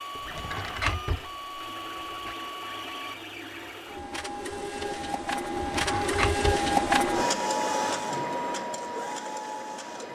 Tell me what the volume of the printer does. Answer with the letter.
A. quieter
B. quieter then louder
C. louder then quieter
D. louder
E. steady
C.